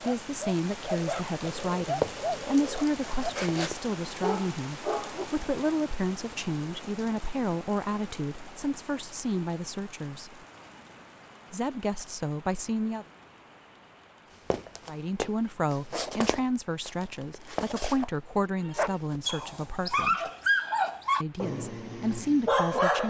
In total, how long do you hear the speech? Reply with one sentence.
The speech can be heard for 19 seconds in total.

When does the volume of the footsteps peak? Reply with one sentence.
The loudest moment of the footsteps is at 2 seconds.